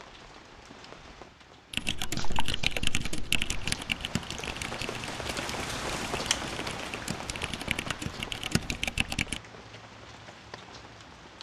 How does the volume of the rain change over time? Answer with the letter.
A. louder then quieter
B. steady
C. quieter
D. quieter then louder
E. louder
A.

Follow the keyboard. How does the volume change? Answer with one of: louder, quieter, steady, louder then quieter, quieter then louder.
quieter then louder.